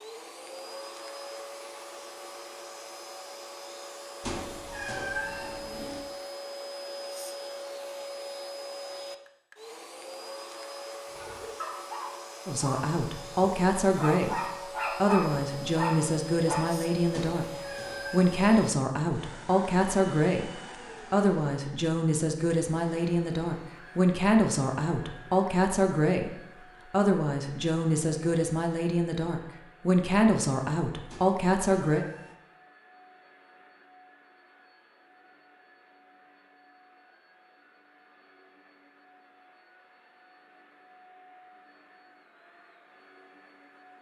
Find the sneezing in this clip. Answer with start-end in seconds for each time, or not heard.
not heard.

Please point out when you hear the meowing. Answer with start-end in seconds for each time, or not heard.
4.2-6.0, 17.1-18.4, 31.1-32.4.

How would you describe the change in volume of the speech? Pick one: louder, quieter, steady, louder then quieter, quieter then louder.
steady.